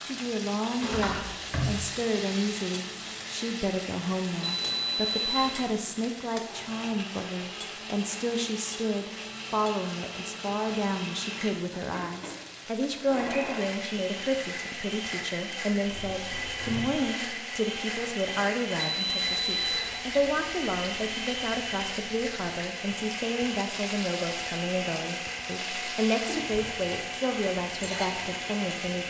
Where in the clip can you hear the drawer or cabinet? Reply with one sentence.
You can hear the drawer or cabinet from 0.8 to 1.9 s and from 15.8 to 17.1 s.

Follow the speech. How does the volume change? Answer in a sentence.
The loudness of the speech stays about the same.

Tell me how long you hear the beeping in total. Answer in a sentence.
The beeping can be heard for 2 seconds in total.